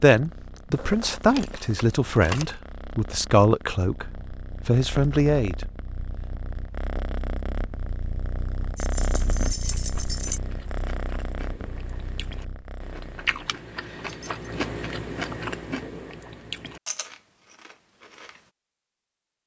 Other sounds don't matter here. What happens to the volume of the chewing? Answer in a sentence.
The loudness of the chewing goes up, then down.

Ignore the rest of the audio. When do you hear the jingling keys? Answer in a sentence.
The jingling keys can be heard from 0.7 to 2.5 s, from 8.8 to 10.4 s and from 13.4 to 14.5 s.